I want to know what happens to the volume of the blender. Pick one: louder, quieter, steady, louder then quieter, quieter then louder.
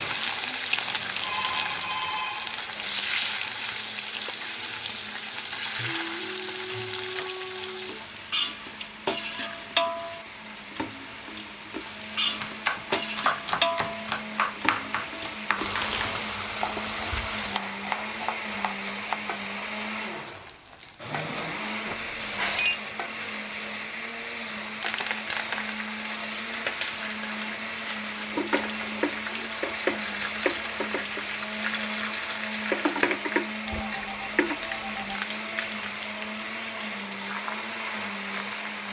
louder.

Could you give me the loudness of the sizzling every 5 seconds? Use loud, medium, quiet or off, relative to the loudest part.
loud, loud, loud, loud, medium, loud, loud, medium.